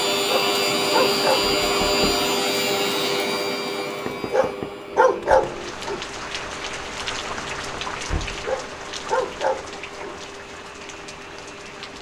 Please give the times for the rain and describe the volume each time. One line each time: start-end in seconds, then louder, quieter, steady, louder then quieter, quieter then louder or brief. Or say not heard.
5.2-11.9 quieter.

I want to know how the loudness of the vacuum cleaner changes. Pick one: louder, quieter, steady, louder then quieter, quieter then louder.
quieter.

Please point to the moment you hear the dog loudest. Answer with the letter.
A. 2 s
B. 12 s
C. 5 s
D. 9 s
C.